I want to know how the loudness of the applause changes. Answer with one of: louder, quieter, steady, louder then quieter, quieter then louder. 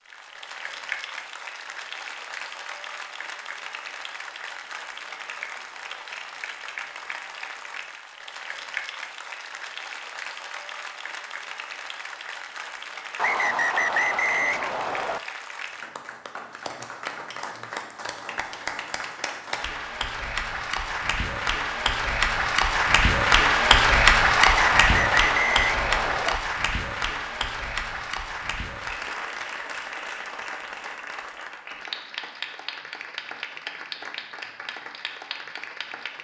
louder then quieter.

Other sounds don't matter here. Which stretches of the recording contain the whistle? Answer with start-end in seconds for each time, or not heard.
13.2-15.2, 24.4-26.4.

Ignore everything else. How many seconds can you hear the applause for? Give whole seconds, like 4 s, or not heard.
36 s.